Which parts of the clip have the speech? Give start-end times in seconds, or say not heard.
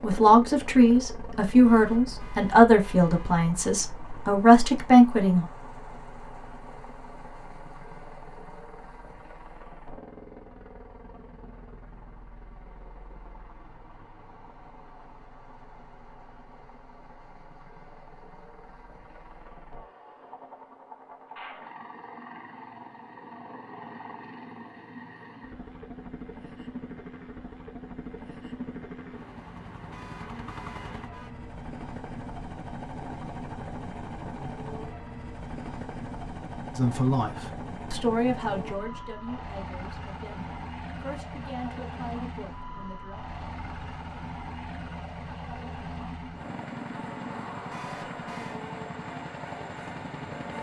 0.0-5.5, 36.8-43.1.